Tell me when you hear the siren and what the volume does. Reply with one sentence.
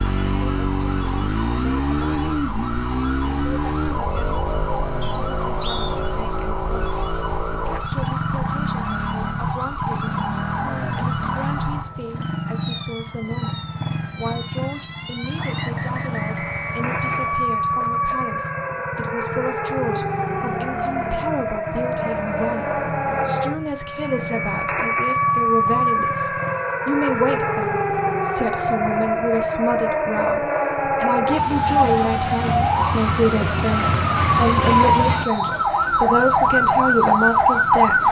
You can hear the siren from 0.0 to 38.0 s, getting louder.